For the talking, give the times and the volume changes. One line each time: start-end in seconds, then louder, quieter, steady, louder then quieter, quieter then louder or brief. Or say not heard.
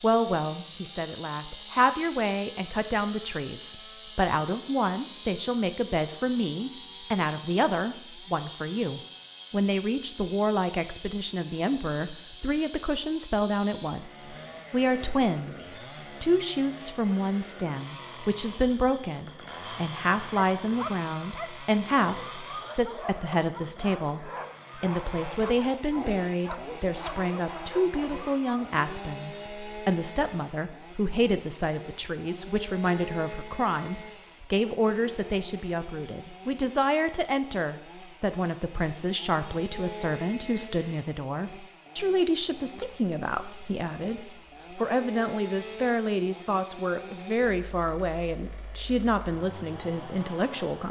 0.0-50.8 steady.